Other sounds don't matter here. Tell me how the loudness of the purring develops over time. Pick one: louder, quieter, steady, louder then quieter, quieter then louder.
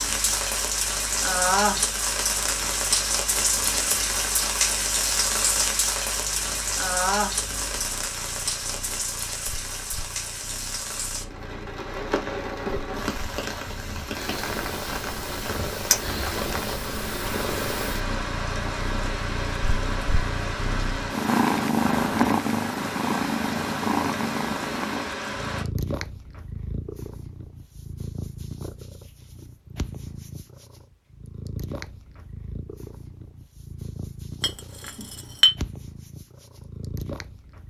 louder then quieter.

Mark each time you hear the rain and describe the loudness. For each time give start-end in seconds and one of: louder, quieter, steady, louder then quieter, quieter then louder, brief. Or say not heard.
0.0-25.6 quieter.